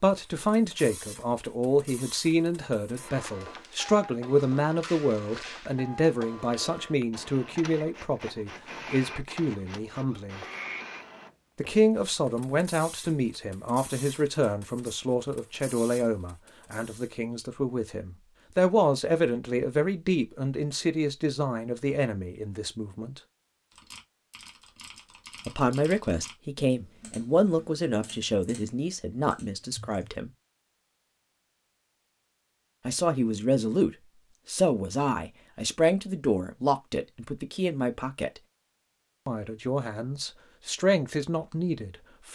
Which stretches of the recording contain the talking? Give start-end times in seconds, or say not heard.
0.0-10.4, 11.6-23.2, 25.4-30.3, 32.9-38.4, 39.2-42.3.